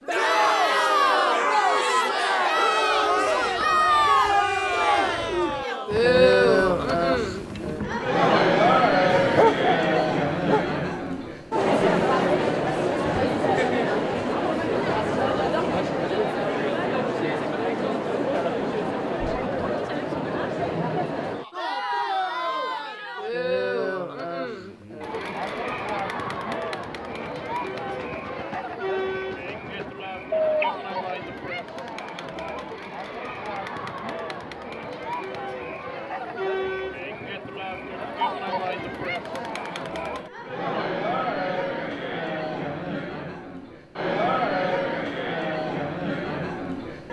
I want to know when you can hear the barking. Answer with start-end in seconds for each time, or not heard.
9.1-10.7.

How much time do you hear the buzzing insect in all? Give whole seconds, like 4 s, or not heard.
not heard.